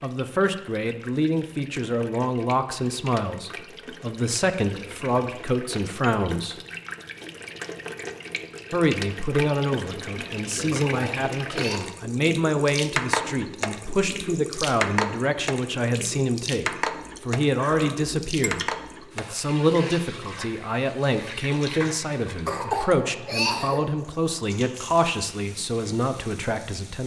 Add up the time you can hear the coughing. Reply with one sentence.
You can hear the coughing for 3 seconds altogether.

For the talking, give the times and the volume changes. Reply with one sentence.
The talking can be heard from 0.0 to 6.6 s, at a steady volume; and from 8.7 to 27.0 s, at a steady volume.